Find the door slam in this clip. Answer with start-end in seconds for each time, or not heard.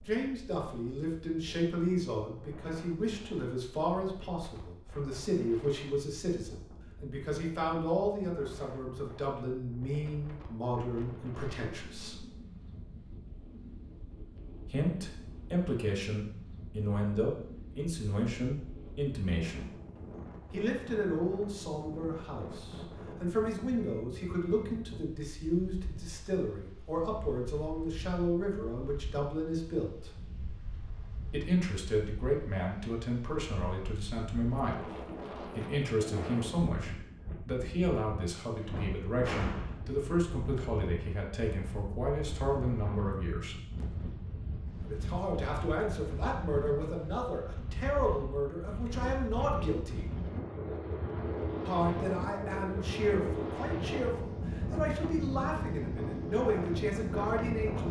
38.6-39.8.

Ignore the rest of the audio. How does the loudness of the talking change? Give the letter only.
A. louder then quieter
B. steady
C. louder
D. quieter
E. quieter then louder
B.